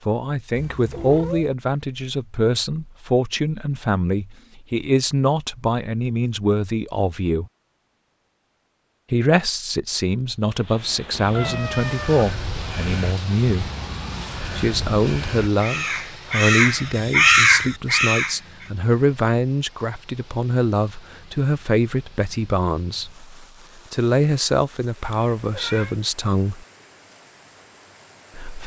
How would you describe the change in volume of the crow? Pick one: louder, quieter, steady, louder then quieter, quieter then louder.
louder.